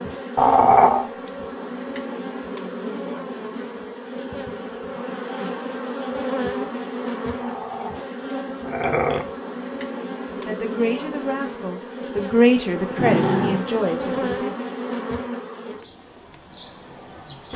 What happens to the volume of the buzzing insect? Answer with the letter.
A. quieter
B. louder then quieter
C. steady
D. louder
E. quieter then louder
C.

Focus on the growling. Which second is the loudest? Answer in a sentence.
The loudest moment of the growling is at 1 second.